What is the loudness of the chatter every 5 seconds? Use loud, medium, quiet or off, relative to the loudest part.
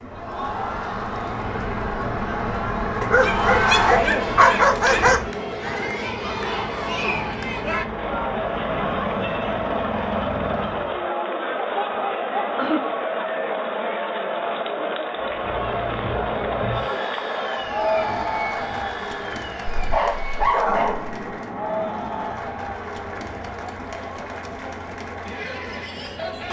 loud, loud, loud, loud, medium, medium.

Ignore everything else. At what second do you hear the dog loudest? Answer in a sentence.
The loudest moment of the dog is at 5 seconds.